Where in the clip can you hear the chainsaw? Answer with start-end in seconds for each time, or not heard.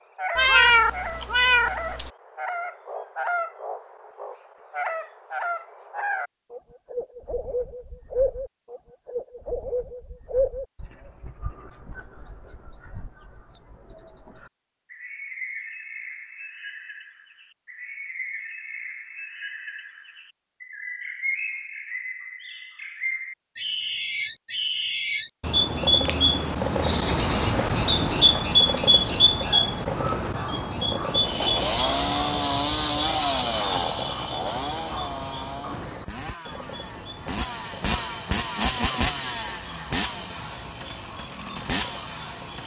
31.1-42.6.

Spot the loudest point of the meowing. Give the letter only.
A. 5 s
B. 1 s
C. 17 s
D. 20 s
B.